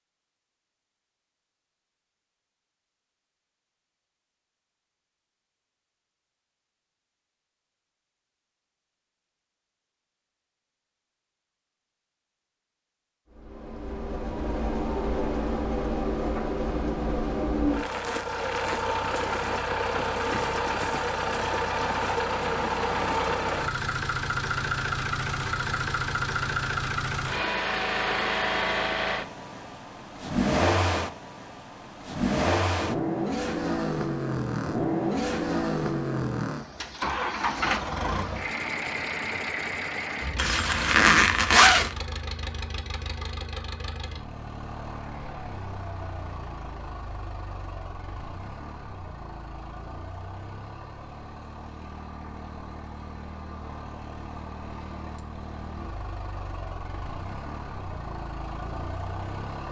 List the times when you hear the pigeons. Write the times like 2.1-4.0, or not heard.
not heard.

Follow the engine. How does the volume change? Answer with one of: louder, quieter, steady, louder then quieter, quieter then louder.
quieter.